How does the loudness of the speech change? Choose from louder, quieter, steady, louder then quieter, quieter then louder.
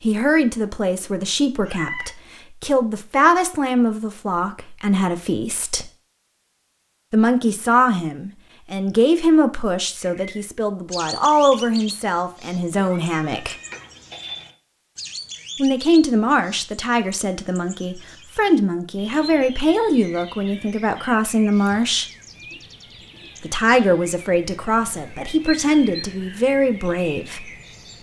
steady.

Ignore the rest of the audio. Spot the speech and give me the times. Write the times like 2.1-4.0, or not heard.
0.0-5.9, 7.1-13.6, 15.6-22.1, 23.4-27.4.